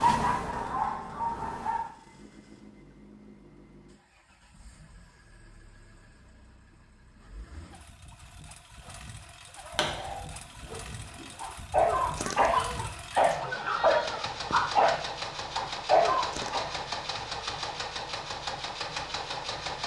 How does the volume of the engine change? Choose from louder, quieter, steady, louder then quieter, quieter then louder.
louder.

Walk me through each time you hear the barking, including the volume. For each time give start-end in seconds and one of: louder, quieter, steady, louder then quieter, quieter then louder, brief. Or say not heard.
0.0-1.9 brief
9.6-16.8 louder.